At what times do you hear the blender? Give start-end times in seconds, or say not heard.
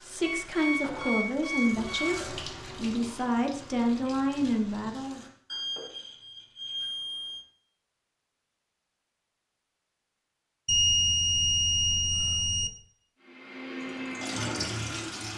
13.2-15.3.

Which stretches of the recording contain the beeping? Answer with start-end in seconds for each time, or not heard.
0.2-2.2, 5.5-7.5, 10.7-12.7.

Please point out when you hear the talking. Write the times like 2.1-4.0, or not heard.
0.0-5.2.